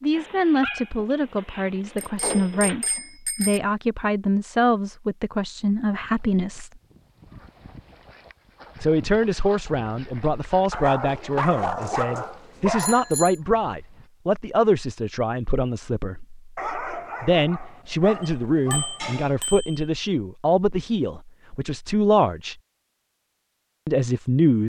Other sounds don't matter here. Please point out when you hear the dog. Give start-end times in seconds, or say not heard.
0.1-3.0, 10.7-13.2, 16.6-19.4.